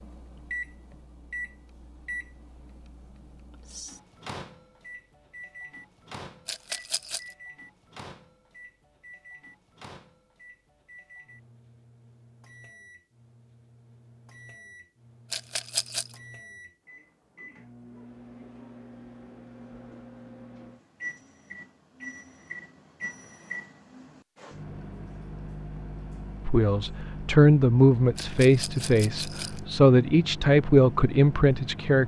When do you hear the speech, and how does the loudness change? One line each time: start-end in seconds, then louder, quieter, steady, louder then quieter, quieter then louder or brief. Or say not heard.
26.4-32.0 quieter then louder.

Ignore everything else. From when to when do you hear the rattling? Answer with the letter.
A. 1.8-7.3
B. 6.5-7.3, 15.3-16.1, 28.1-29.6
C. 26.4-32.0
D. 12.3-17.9
B.